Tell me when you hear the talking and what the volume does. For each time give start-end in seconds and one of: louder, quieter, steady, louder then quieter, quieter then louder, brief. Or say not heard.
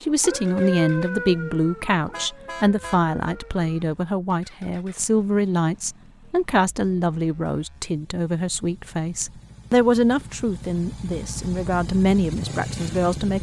0.0-13.3 steady.